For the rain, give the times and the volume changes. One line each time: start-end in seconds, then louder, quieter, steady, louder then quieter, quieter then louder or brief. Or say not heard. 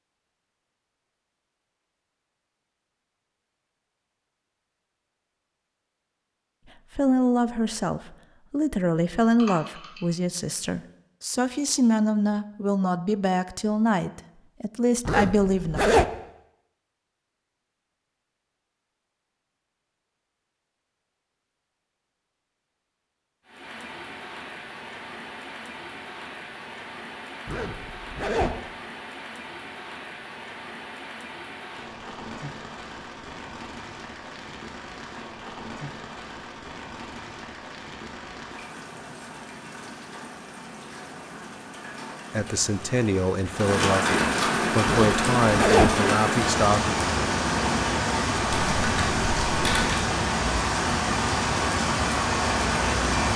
23.4-53.3 louder.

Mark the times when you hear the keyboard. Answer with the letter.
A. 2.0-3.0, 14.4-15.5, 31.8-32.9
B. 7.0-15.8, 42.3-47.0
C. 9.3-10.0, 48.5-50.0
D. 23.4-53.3
C.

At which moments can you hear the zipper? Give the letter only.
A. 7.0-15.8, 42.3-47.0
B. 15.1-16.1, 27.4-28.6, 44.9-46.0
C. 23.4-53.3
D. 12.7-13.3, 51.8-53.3
B.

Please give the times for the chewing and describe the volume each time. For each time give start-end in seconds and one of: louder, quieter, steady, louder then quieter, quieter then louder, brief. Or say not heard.
not heard.